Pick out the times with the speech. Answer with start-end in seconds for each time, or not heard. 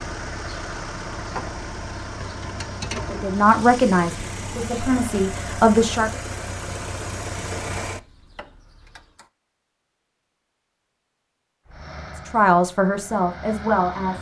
3.1-6.1, 12.3-14.1.